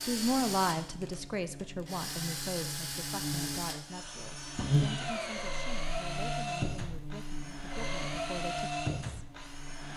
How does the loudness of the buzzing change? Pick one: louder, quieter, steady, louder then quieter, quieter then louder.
louder then quieter.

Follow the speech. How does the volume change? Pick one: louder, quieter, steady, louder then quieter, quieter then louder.
quieter.